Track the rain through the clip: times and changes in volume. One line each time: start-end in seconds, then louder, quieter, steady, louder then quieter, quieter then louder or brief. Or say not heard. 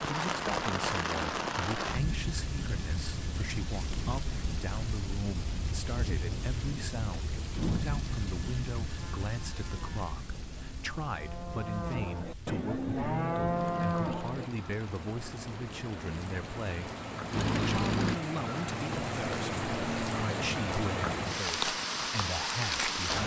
0.0-23.2 quieter then louder.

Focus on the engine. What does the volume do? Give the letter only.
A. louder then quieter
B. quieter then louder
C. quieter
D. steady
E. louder
E.